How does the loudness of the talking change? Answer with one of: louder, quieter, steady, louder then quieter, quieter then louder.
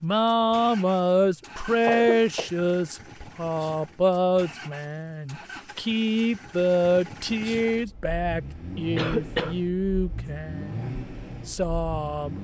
quieter.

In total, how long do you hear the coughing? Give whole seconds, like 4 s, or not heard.
2 s.